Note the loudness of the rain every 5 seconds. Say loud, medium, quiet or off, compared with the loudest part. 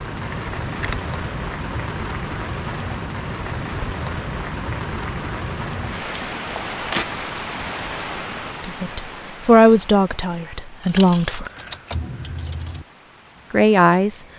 loud, loud, quiet.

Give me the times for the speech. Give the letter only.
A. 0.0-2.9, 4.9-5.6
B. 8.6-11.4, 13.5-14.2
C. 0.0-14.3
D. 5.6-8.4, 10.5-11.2
B.